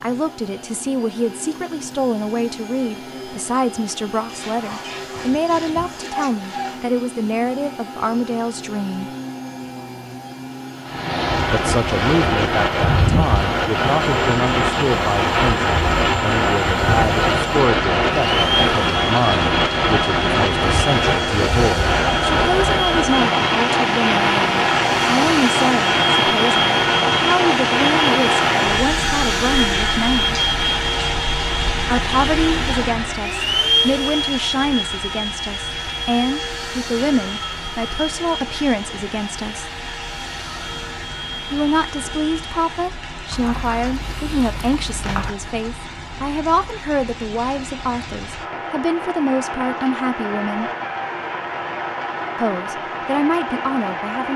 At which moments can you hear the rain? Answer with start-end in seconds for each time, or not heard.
10.8-54.3.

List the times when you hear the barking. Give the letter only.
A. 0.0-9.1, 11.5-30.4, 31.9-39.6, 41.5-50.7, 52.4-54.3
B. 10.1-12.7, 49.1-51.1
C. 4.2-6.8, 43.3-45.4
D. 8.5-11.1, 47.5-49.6
C.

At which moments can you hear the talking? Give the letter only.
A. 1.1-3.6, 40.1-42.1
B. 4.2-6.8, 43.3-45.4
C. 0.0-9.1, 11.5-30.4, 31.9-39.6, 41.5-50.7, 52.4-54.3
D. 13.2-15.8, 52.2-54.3
C.